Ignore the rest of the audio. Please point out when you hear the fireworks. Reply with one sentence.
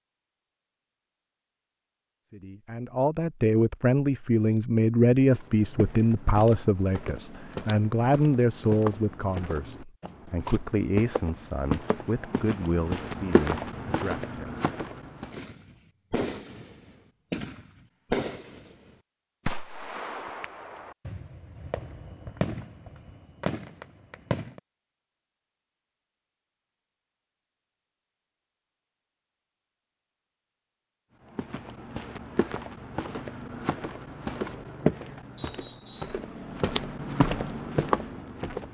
You can hear the fireworks from 15.3 to 24.6 s.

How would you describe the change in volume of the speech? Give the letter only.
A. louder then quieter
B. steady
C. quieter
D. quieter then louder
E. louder
C.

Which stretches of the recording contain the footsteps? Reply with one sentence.
The footsteps can be heard from 5.2 to 15.4 s and from 31.4 to 38.6 s.